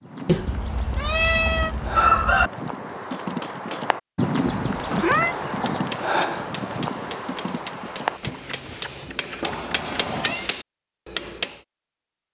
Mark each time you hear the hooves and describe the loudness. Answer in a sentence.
The hooves can be heard from 0.0 to 10.4 s, getting louder then quieter.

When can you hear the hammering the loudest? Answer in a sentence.
The volume of the hammering peaks at 11 seconds.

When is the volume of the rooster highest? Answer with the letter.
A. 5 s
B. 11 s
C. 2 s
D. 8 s
C.